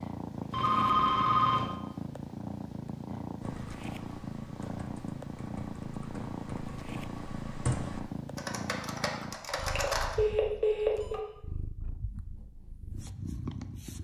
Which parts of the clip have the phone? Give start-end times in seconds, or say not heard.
0.5-1.6, 9.6-11.2.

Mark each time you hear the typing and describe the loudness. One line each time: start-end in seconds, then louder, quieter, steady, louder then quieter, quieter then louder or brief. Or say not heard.
3.4-10.2 louder.